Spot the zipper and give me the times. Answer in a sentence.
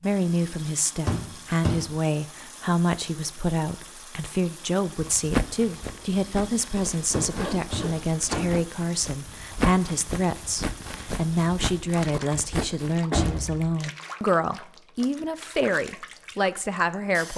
The zipper can be heard from 6.8 to 8.4 s.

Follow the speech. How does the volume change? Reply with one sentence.
The volume of the speech stays about the same.